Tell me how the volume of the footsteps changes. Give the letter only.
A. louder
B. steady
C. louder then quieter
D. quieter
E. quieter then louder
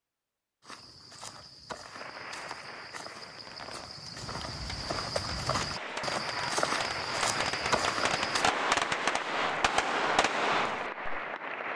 A.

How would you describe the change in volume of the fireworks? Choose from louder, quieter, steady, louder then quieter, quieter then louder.
louder.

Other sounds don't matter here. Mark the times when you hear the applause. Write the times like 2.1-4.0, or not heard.
1.9-11.7.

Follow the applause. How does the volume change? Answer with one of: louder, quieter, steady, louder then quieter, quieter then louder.
louder.